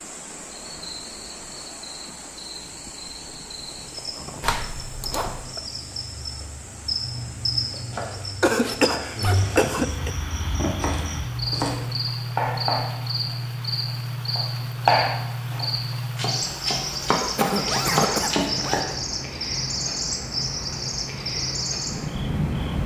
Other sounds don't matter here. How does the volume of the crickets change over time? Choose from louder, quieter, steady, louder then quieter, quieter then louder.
louder.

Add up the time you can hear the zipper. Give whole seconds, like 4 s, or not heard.
4 s.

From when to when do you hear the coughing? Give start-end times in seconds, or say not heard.
4.4-5.6, 8.4-10.1, 17.2-18.3.